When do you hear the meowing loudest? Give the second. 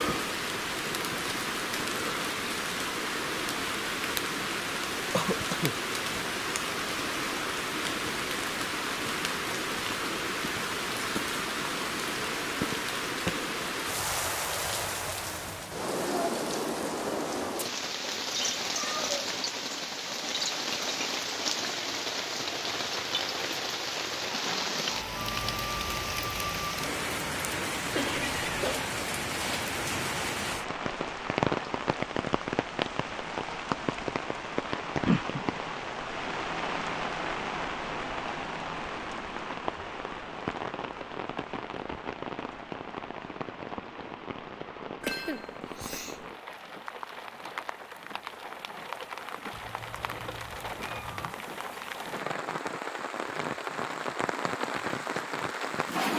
19 s.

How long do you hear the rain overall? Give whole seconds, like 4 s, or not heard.
56 s.